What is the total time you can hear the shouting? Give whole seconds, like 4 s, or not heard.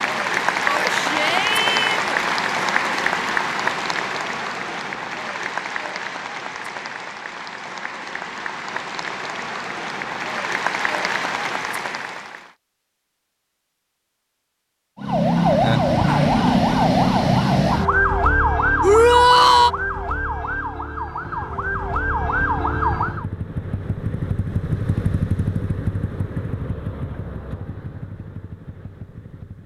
2 s.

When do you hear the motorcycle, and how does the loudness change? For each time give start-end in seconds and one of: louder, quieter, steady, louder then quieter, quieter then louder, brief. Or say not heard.
21.2-29.6 louder then quieter.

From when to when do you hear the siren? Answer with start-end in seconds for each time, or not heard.
14.9-23.2.